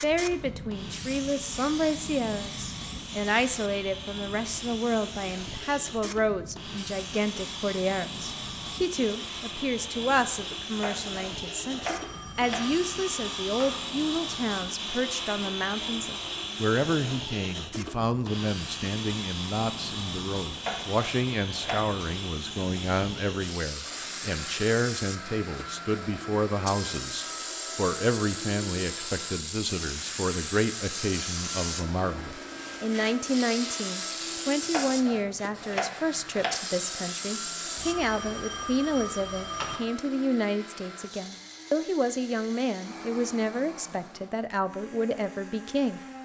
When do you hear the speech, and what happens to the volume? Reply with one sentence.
You can hear the speech from 0.0 to 46.0 s, at a steady volume.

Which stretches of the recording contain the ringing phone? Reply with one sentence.
You can hear the ringing phone from 11.8 to 13.8 s and from 37.8 to 39.8 s.